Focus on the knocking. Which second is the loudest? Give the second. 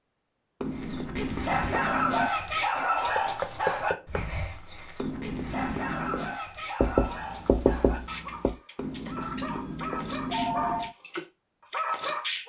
7 s.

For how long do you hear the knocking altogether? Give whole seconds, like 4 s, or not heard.
3 s.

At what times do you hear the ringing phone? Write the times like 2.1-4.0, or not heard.
0.6-2.4, 5.0-6.4, 8.8-10.9.